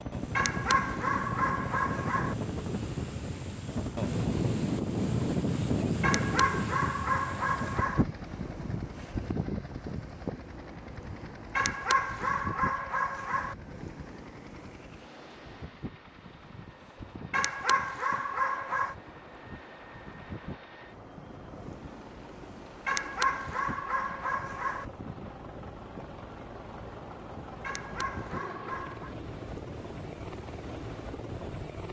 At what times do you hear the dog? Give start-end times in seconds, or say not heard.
0.3-2.4, 6.0-8.1, 11.6-13.6, 17.3-18.9, 22.9-24.9, 27.6-29.1.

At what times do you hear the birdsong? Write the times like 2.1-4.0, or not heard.
not heard.